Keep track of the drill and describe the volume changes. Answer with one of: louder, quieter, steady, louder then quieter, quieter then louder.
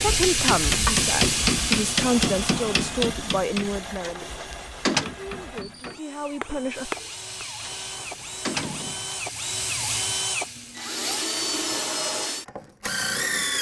quieter then louder.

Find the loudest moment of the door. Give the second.
5 s.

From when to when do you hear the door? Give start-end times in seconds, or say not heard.
4.0-5.1, 7.6-9.2.